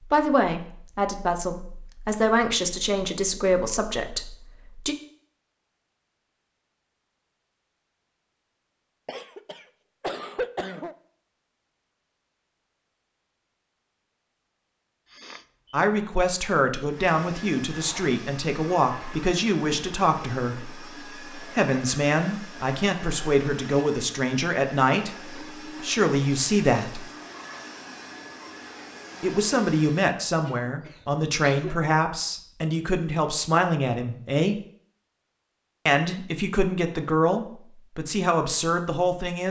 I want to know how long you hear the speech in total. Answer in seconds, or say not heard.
25 s.